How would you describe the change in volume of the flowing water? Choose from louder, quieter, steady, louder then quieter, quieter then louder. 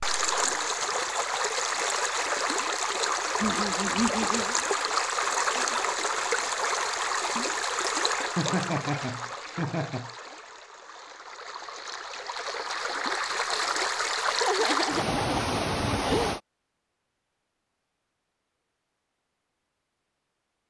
quieter then louder.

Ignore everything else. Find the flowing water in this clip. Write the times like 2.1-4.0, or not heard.
0.0-16.4.